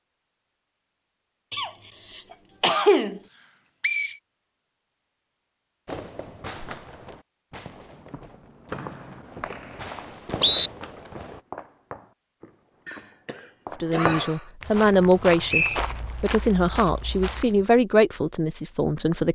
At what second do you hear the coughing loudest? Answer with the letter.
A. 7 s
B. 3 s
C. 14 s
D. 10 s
B.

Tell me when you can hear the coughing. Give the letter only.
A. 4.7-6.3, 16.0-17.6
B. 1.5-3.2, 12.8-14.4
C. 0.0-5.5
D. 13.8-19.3
B.